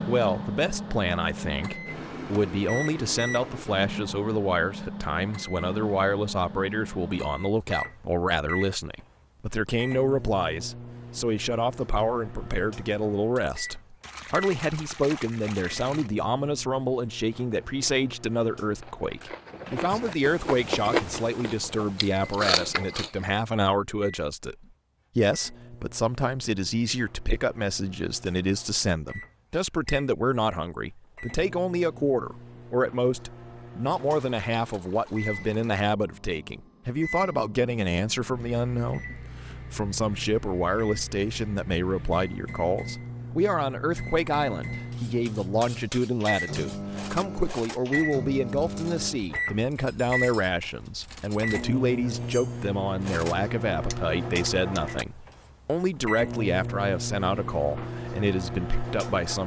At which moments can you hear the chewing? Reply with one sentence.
You can hear the chewing from 17.3 to 23.1 s.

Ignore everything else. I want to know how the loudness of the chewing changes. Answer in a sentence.
The loudness of the chewing goes up.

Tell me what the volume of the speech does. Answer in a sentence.
The volume of the speech stays about the same.